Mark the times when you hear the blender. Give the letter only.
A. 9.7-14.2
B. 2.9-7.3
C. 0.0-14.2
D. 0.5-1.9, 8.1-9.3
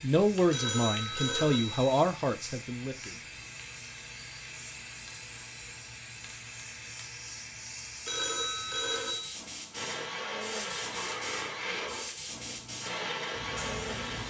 A.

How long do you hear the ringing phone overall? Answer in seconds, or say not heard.
3 s.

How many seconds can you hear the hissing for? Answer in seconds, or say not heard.
14 s.